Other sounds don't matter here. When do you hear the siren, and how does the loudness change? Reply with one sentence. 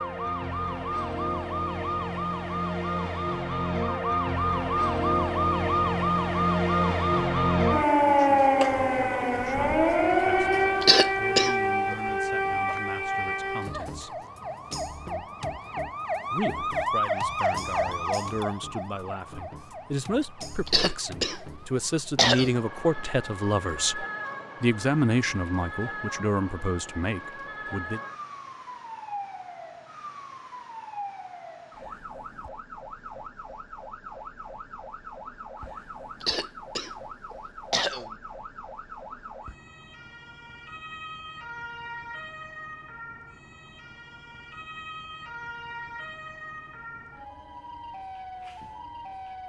You can hear the siren from 0.0 to 49.4 s, getting quieter.